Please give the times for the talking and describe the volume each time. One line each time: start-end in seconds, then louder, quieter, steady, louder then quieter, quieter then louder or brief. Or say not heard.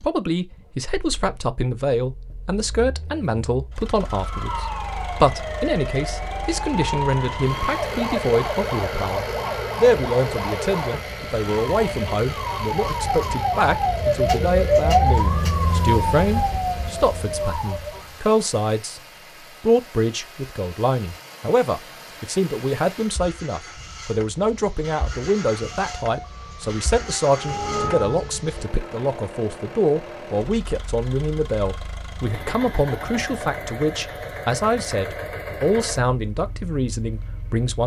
0.0-19.0 steady
19.6-37.8 steady.